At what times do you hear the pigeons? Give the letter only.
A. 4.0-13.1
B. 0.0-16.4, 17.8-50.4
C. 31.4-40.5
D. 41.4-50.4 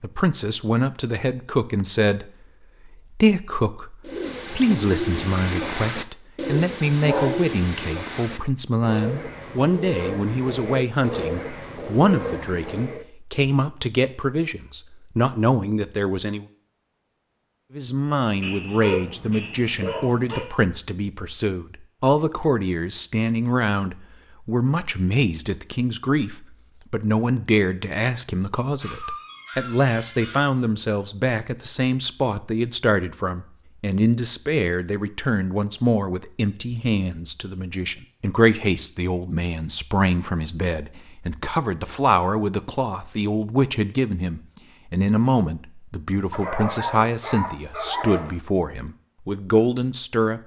A.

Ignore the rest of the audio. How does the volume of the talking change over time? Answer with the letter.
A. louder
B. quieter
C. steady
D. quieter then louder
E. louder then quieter
C.